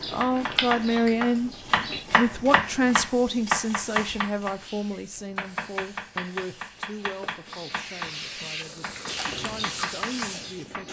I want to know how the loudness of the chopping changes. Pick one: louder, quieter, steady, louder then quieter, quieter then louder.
quieter.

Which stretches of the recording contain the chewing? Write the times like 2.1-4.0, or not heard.
0.0-2.0, 8.9-10.8.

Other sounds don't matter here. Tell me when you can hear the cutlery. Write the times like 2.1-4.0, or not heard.
not heard.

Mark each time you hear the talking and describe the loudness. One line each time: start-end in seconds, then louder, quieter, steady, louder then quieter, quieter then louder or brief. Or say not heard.
0.0-10.8 quieter.